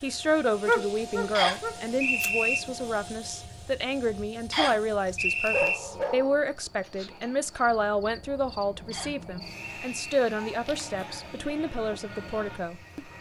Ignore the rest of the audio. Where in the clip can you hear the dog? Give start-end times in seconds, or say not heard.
0.7-2.3, 5.5-6.4, 9.7-11.2.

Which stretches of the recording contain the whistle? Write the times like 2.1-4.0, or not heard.
1.4-2.6, 4.5-5.8, 8.9-10.0.